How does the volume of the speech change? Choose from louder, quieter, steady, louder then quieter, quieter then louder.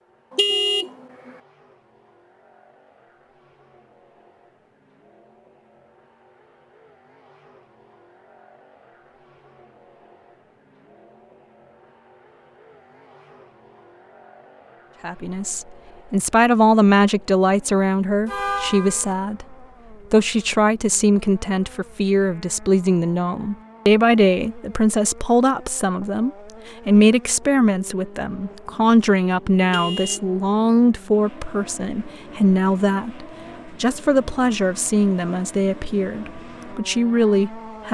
steady.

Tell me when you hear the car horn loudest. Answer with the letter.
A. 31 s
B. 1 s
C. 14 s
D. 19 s
B.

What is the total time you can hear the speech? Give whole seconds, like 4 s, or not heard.
23 s.